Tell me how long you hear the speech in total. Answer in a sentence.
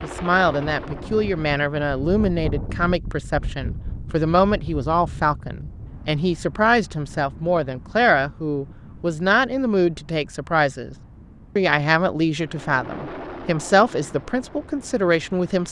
You can hear the speech for 15 seconds altogether.